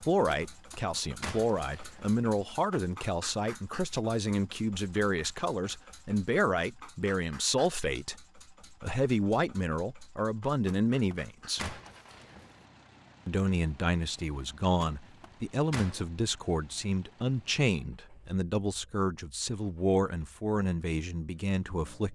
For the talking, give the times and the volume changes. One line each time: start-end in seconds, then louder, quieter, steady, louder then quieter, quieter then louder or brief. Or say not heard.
0.0-11.8 steady
13.2-22.0 steady.